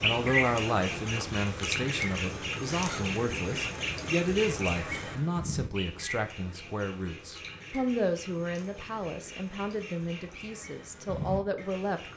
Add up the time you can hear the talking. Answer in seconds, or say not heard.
12 s.